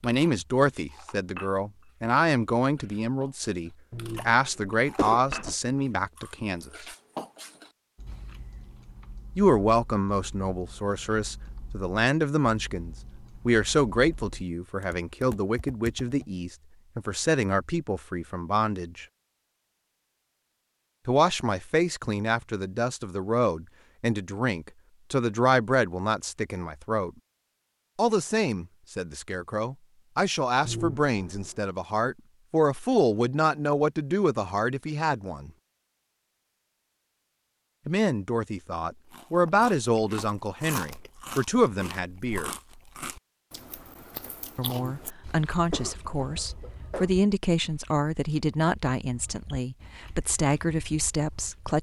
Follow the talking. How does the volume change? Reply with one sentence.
The volume of the talking stays about the same.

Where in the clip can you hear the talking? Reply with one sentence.
You can hear the talking from 0.0 to 6.8 s, from 9.3 to 19.1 s, from 21.1 to 27.1 s, from 27.9 to 35.5 s, from 37.9 to 42.5 s and from 44.5 to 51.7 s.